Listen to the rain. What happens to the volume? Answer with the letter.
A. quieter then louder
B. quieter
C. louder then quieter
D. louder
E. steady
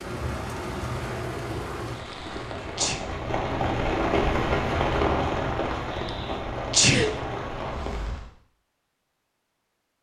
C.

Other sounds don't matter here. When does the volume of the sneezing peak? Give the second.
7 s.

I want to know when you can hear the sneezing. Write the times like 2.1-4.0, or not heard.
1.9-3.0, 5.9-7.1.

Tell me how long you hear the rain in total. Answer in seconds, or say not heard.
8 s.